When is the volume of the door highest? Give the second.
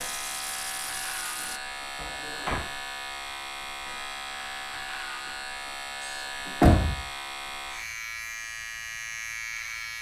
7 s.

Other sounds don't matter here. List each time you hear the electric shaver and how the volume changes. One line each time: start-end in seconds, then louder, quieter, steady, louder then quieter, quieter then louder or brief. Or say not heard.
0.0-9.9 steady.